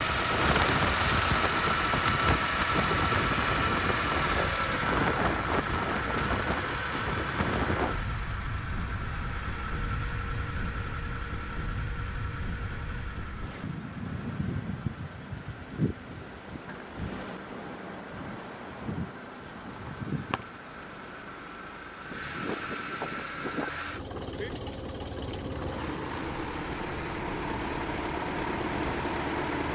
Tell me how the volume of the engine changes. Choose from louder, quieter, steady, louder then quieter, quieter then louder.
quieter then louder.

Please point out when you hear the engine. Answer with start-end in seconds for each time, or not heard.
0.0-29.7.